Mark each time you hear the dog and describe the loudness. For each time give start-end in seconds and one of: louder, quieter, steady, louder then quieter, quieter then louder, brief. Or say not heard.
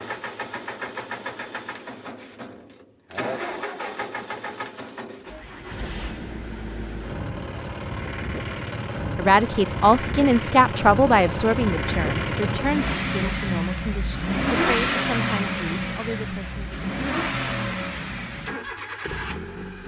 not heard.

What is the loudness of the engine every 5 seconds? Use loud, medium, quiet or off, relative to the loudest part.
medium, medium, loud, loud.